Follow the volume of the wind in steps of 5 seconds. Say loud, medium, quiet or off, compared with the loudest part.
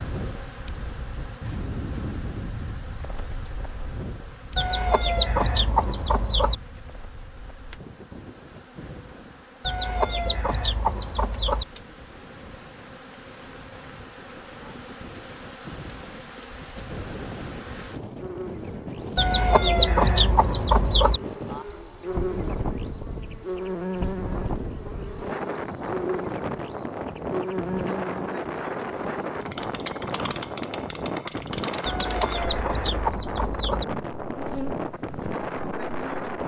medium, quiet, quiet, medium, loud, loud, loud, loud.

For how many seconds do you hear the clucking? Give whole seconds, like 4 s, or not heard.
8 s.